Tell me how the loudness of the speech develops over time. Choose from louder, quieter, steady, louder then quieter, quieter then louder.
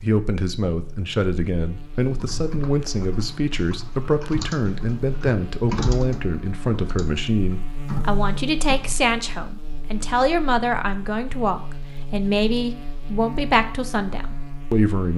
steady.